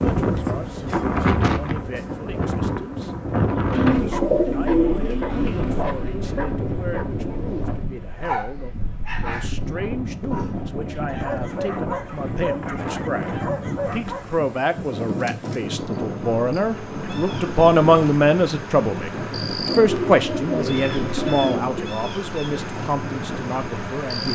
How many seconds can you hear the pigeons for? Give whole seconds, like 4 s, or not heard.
5 s.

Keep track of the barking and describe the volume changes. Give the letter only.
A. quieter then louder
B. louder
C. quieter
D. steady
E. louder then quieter
D.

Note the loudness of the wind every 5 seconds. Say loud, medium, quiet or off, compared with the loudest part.
loud, medium, medium, medium, medium.